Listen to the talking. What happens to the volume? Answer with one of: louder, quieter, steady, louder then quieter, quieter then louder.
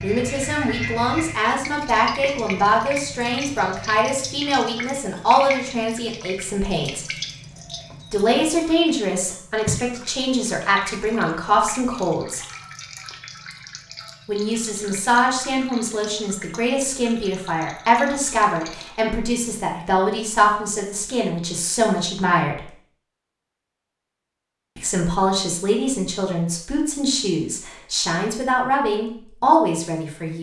steady.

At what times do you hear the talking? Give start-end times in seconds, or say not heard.
0.0-7.0, 8.1-12.4, 14.2-22.7, 24.8-30.3.